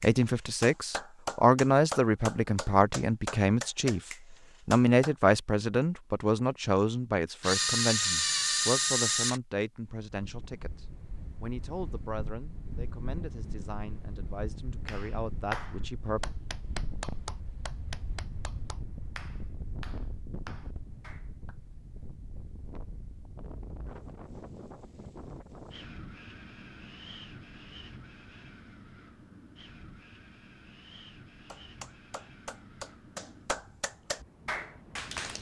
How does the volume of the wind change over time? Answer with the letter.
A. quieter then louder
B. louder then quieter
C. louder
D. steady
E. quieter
E.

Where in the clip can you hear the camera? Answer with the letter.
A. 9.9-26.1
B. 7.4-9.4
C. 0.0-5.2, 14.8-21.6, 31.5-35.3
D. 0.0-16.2
B.